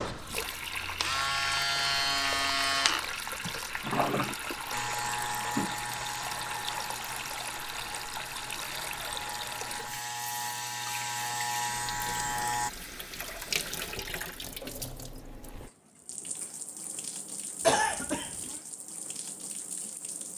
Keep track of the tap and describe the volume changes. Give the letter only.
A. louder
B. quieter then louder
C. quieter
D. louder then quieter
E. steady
C.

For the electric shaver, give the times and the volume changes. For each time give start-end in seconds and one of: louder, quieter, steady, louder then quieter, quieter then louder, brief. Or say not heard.
0.0-12.7 quieter then louder.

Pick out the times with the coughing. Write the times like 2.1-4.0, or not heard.
17.6-18.4.